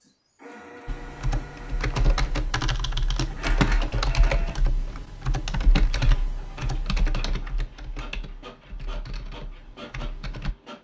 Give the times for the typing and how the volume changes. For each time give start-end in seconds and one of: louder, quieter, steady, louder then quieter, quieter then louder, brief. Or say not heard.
0.8-10.6 quieter.